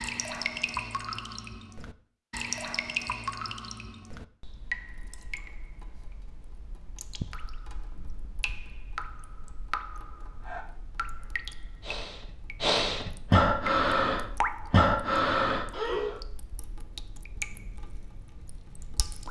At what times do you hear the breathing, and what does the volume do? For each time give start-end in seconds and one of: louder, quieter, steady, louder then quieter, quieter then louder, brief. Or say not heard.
10.4-16.1 louder.